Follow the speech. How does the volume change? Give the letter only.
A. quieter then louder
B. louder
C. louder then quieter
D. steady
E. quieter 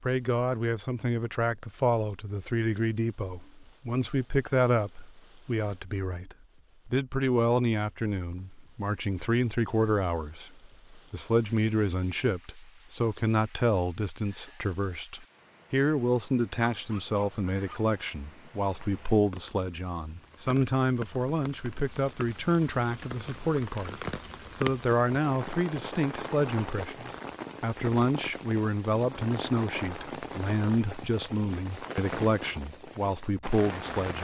D.